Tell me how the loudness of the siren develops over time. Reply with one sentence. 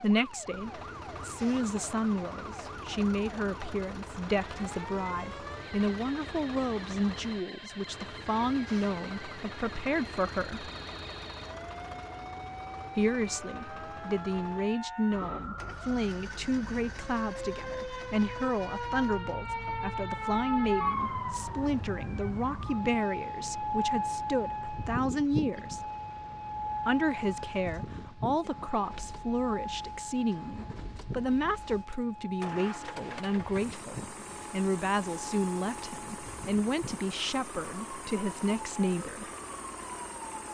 The loudness of the siren goes up, then down.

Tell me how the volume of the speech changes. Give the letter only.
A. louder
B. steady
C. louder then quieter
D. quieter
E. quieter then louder
B.